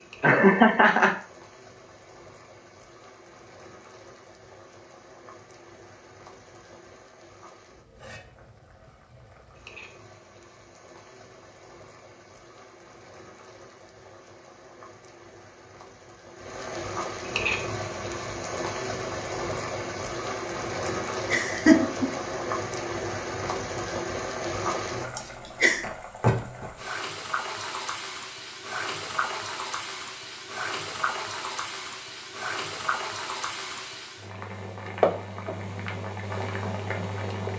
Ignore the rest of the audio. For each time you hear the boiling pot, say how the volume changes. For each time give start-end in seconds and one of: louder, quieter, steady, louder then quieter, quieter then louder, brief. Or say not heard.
0.0-37.5 louder.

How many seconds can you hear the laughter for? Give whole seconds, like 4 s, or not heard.
3 s.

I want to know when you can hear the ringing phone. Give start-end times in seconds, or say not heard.
not heard.